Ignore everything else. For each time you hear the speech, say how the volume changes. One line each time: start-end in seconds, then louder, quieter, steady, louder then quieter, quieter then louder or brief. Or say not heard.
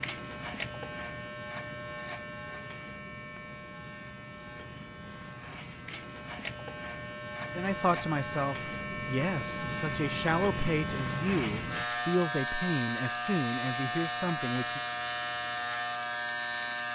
7.5-14.8 steady.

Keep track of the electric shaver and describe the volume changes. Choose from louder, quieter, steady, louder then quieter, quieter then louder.
louder.